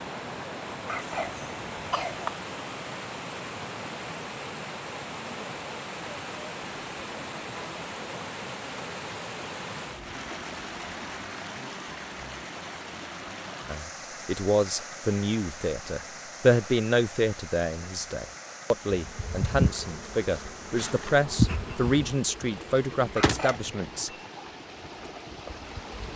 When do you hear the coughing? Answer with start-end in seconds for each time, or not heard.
0.8-2.3, 23.1-23.8.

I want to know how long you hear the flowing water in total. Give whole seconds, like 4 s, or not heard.
26 s.